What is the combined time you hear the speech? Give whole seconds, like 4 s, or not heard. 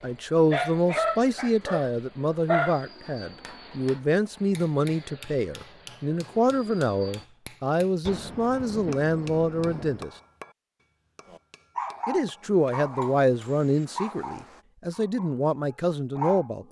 15 s.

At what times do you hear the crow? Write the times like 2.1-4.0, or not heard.
not heard.